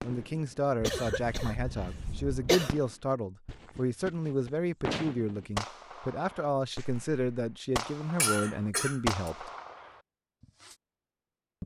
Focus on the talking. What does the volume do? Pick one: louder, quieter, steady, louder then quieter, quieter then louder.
steady.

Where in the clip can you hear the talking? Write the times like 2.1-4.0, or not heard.
0.0-9.5.